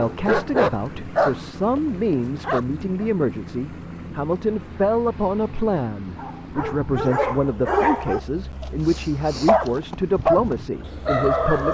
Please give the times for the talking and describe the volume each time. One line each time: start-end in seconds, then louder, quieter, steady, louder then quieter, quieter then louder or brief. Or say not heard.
0.0-11.7 steady.